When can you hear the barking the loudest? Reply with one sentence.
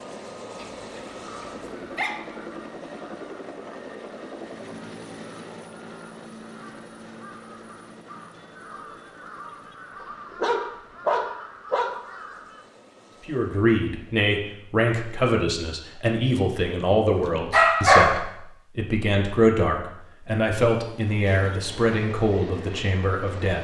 The volume of the barking peaks at 18 seconds.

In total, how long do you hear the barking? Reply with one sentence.
You can hear the barking for 5 seconds altogether.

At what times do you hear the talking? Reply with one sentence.
The talking can be heard from 13.2 to 23.6 s.